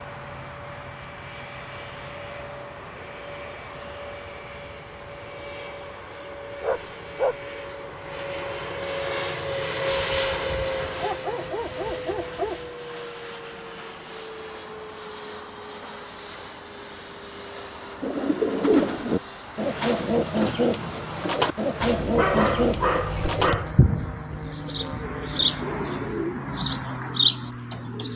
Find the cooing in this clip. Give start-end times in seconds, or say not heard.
18.0-28.1.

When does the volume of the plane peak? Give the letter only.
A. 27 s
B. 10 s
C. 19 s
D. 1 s
B.